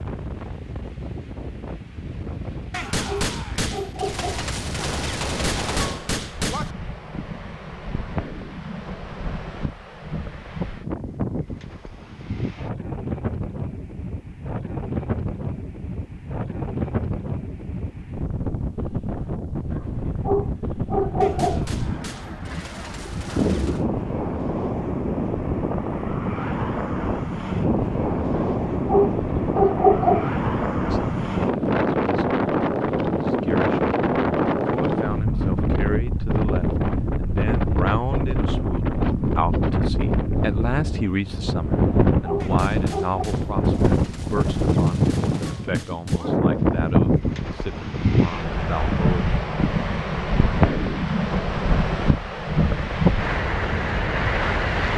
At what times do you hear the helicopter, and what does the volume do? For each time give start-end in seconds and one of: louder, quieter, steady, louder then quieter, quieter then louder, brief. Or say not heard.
not heard.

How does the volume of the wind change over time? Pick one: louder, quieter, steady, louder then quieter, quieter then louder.
louder.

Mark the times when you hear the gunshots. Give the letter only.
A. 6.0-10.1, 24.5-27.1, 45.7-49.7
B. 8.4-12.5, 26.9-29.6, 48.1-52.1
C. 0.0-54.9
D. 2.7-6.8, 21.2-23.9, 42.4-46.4
D.